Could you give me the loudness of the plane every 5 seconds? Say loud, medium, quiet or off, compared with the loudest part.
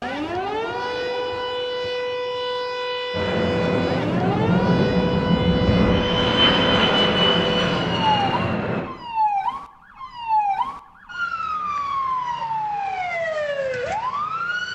loud, loud, off.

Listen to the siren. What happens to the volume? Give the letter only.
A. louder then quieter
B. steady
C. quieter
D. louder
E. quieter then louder
B.